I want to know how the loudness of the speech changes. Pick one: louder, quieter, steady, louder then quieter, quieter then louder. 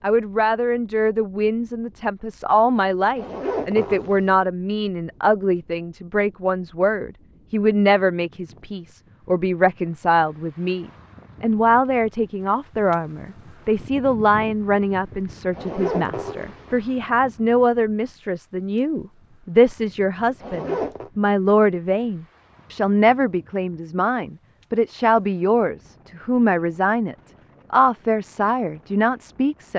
steady.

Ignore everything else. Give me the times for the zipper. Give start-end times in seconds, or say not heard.
3.1-4.4, 15.5-16.8, 20.4-21.1.